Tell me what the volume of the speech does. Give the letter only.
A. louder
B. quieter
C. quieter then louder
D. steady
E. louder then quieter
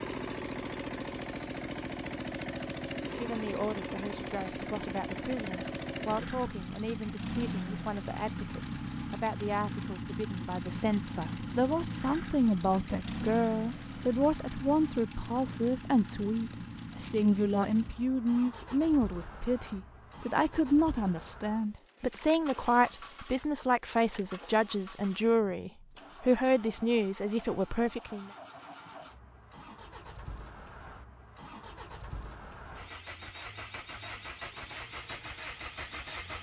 A.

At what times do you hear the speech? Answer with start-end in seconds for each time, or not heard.
3.1-28.3.